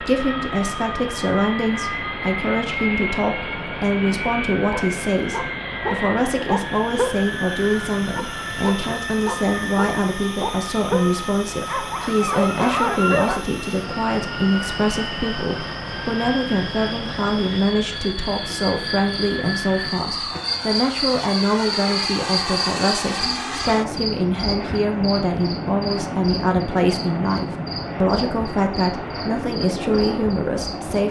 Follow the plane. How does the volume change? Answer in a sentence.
The volume of the plane stays about the same.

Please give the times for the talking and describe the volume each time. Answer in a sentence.
You can hear the talking from 0.0 to 31.0 s, at a steady volume.